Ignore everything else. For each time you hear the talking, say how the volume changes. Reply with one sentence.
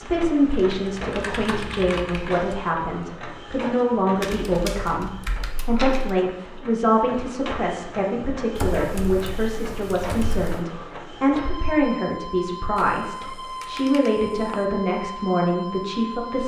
You can hear the talking from 0.0 to 16.4 s, at a steady volume.